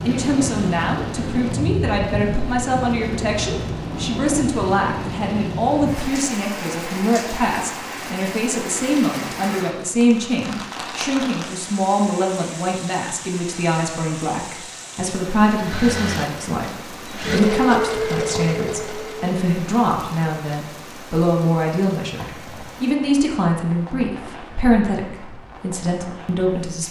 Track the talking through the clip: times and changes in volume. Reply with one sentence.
You can hear the talking from 0.0 to 26.8 s, at a steady volume.